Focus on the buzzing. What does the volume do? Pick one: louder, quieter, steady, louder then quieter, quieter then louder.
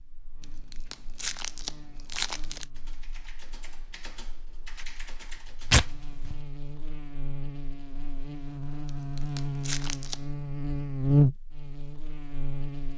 quieter then louder.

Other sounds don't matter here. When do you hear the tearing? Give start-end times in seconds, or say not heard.
0.4-2.6, 5.7-6.3, 8.8-10.2.